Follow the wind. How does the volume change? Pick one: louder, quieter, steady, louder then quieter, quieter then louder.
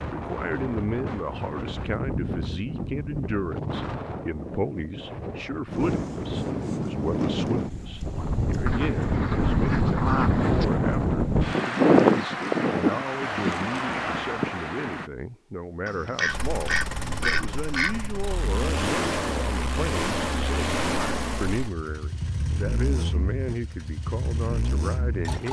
louder.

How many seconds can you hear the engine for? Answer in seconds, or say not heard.
9 s.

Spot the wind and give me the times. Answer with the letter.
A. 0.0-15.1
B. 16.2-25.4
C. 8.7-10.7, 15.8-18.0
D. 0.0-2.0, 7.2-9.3
A.